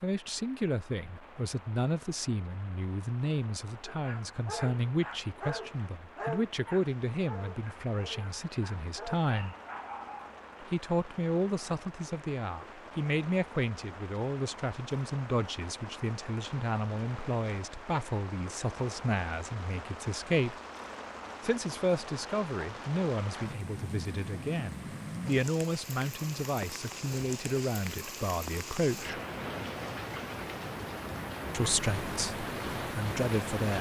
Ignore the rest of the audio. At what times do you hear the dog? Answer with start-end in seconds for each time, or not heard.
3.9-10.2.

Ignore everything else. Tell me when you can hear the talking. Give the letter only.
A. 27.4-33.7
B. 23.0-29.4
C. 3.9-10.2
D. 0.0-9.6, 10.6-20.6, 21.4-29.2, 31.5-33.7
D.